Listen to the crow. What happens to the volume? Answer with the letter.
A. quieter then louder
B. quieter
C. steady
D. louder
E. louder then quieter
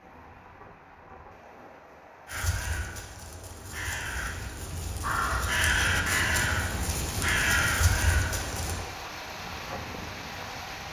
D.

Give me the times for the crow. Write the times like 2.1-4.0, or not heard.
2.2-8.8.